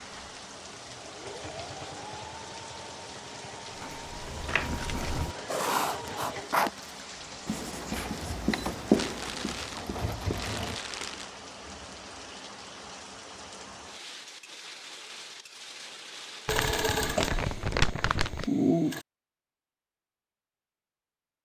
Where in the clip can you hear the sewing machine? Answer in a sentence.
You can hear the sewing machine from 0.0 to 10.8 s and from 16.4 to 19.1 s.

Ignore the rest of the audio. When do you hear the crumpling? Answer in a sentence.
The crumpling can be heard from 4.5 to 5.2 s, from 8.8 to 11.3 s and from 16.4 to 18.5 s.